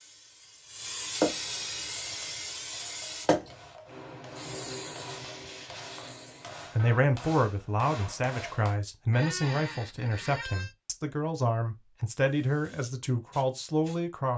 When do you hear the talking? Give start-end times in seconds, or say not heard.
6.8-14.3.